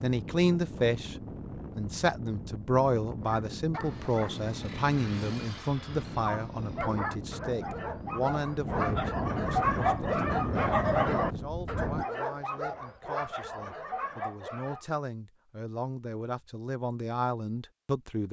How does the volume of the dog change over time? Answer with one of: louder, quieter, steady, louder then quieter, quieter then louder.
louder then quieter.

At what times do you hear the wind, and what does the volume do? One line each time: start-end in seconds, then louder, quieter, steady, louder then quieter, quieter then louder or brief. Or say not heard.
0.0-12.1 louder.